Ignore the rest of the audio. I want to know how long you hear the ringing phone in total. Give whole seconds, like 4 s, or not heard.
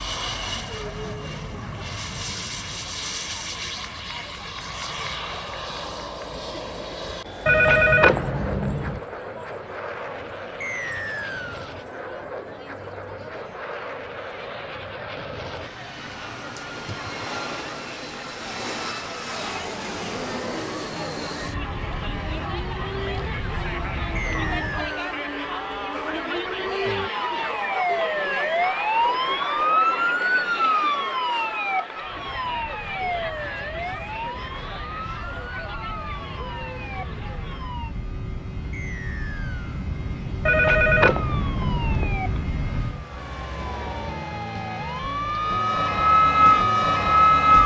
3 s.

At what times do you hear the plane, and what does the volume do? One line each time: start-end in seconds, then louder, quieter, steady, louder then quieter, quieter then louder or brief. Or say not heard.
0.0-24.9 steady
32.0-43.0 louder.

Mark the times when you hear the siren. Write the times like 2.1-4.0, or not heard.
20.4-38.0, 41.1-47.6.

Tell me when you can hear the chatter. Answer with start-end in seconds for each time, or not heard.
0.1-37.8.